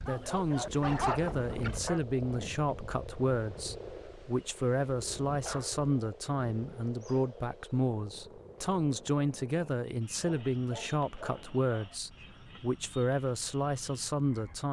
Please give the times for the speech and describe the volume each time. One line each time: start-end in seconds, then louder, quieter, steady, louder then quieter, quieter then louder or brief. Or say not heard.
0.0-14.6 steady.